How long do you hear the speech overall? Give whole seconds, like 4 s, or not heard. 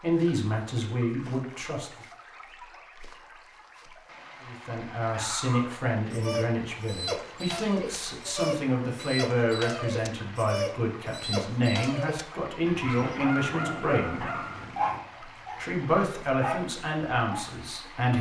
14 s.